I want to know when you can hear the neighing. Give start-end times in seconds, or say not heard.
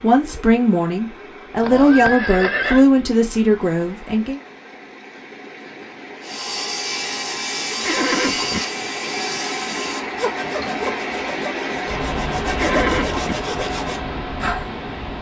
1.6-2.9, 7.8-8.6, 12.6-13.3.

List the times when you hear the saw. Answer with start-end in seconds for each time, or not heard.
6.2-14.7.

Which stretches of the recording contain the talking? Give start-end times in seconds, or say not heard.
0.0-4.4.